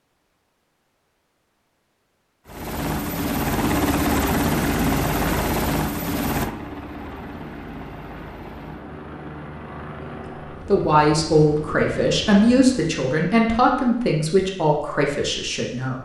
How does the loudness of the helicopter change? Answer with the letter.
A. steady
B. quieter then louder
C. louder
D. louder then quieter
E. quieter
E.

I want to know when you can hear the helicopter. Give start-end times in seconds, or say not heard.
2.5-12.9.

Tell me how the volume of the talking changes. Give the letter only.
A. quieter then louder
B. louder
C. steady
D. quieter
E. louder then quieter
D.